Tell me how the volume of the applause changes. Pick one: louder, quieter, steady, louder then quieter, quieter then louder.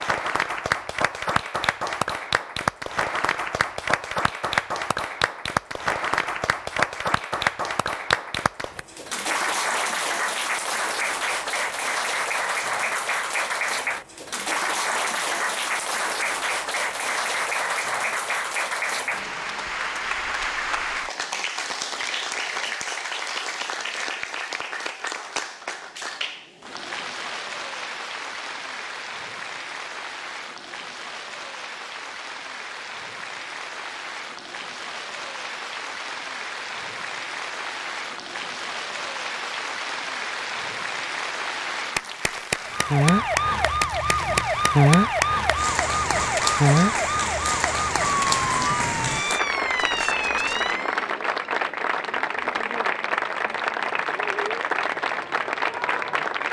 quieter then louder.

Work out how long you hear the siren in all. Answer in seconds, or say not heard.
8 s.